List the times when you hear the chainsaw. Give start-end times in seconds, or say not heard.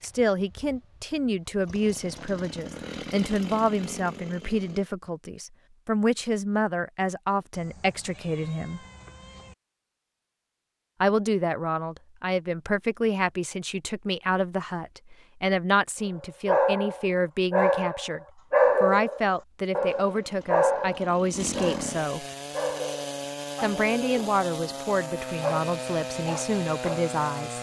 0.0-4.9, 19.8-27.5.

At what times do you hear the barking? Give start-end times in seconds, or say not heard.
16.1-27.1.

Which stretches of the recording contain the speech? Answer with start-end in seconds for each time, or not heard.
0.0-8.8, 11.0-18.2, 18.8-22.2, 23.6-27.5.